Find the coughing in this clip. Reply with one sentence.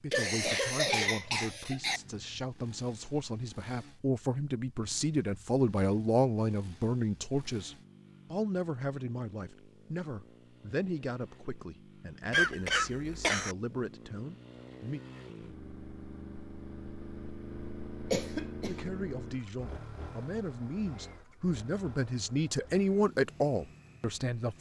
The coughing can be heard from 0.1 to 2.0 s, from 12.3 to 13.6 s and from 18.1 to 18.9 s.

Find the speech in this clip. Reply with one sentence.
You can hear the speech from 0.0 to 15.0 s and from 18.6 to 24.5 s.